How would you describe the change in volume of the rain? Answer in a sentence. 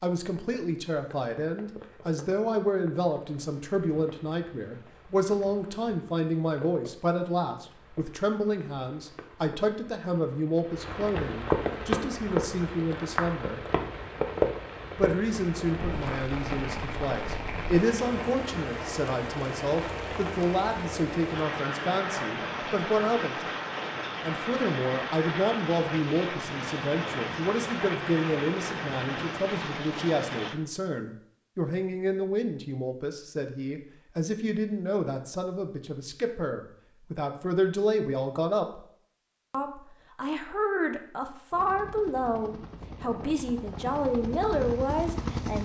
The volume of the rain goes up.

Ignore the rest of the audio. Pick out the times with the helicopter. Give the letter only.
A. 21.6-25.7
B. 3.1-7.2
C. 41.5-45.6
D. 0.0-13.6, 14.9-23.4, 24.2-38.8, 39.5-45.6
C.